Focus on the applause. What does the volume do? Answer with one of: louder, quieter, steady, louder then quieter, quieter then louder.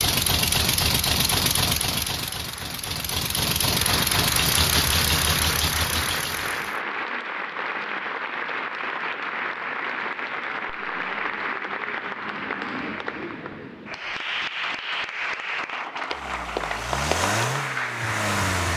steady.